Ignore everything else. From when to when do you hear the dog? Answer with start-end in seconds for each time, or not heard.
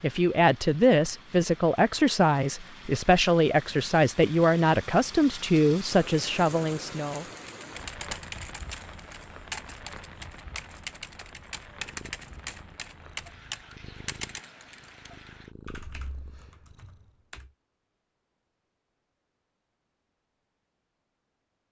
not heard.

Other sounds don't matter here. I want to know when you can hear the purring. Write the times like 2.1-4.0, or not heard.
11.7-17.1.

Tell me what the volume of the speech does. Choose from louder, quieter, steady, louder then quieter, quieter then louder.
steady.